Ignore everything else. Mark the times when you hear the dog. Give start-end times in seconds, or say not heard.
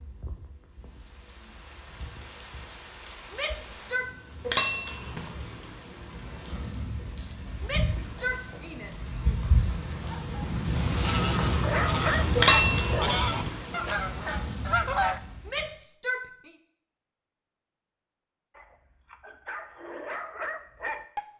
11.6-13.2, 18.5-21.2.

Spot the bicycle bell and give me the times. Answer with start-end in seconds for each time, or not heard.
4.5-5.3, 12.3-13.2.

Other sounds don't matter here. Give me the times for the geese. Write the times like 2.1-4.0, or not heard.
10.1-15.2.